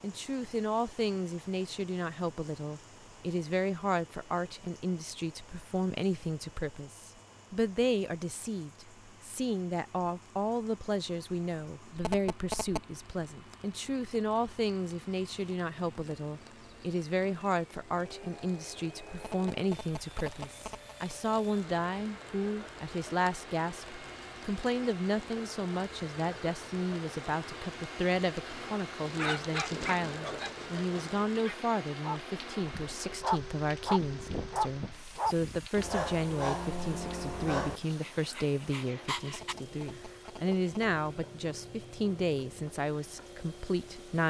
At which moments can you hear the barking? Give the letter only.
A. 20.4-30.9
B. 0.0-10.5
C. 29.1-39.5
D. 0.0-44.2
C.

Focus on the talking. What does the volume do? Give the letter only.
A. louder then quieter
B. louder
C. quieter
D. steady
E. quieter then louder
D.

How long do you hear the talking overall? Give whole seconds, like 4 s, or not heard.
44 s.